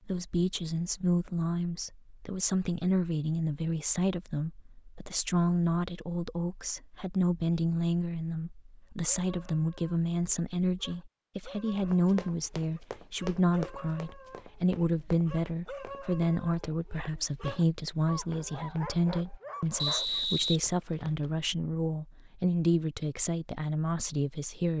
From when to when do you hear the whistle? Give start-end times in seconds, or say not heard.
19.8-21.2.